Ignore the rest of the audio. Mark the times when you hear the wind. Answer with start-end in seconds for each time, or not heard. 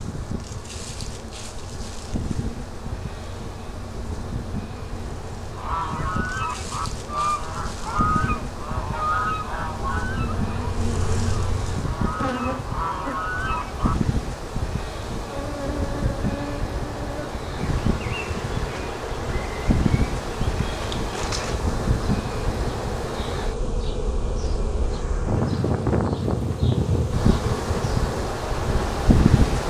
0.0-29.6.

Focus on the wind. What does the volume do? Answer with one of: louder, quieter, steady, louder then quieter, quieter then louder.
louder.